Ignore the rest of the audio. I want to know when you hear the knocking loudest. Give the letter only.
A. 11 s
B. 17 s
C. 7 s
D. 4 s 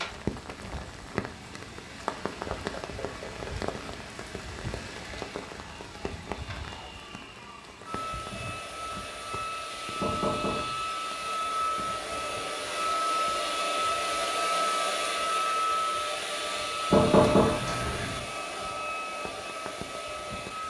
B.